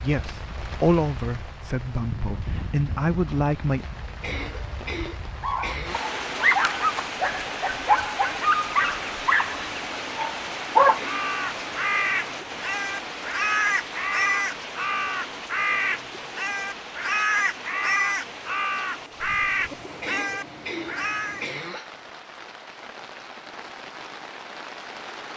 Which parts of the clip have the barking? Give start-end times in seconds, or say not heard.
5.4-11.0.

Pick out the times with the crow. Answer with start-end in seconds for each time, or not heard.
11.0-21.4.